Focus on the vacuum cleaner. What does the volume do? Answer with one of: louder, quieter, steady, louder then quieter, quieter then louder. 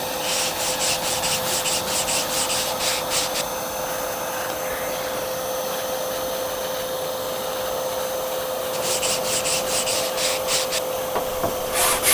steady.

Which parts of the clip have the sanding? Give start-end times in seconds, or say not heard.
0.0-3.5, 8.7-12.0.